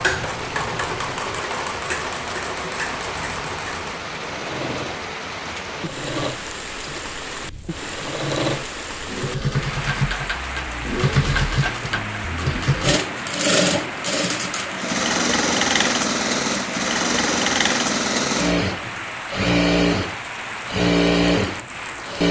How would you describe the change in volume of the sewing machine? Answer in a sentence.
The loudness of the sewing machine goes up.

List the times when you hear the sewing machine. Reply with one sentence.
The sewing machine can be heard from 0.0 to 22.2 s.